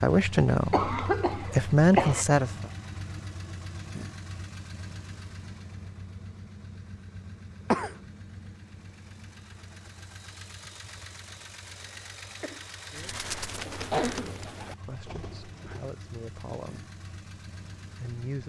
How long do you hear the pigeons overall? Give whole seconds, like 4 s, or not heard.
3 s.